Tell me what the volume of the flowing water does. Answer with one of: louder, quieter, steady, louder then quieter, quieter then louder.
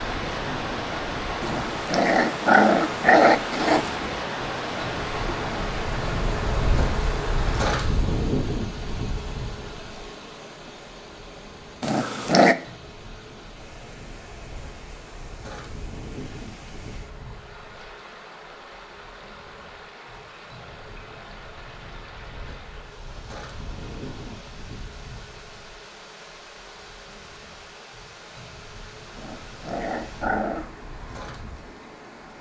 quieter.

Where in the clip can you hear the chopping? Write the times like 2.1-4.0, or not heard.
not heard.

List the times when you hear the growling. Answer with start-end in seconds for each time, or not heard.
1.4-4.1, 11.8-12.6, 29.1-30.7.